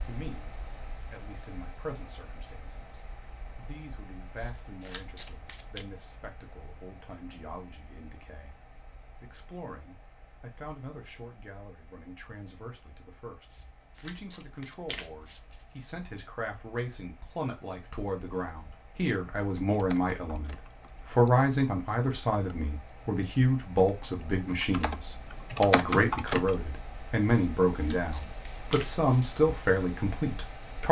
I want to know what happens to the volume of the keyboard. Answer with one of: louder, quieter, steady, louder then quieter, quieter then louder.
quieter then louder.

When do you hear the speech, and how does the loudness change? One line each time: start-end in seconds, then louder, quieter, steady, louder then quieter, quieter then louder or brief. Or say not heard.
0.1-30.8 louder.